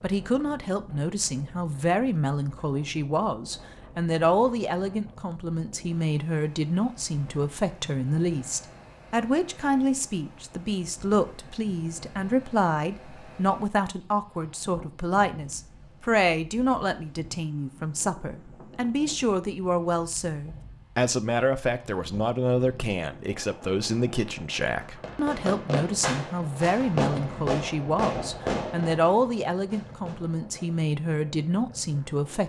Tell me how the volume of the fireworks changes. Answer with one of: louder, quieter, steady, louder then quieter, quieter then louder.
quieter.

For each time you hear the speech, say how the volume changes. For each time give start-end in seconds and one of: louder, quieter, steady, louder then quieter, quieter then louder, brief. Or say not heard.
0.0-32.4 steady.